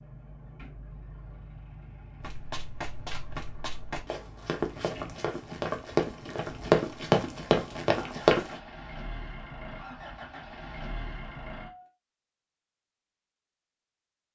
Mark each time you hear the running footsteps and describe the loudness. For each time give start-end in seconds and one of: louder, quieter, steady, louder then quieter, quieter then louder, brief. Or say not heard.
2.2-8.6 louder.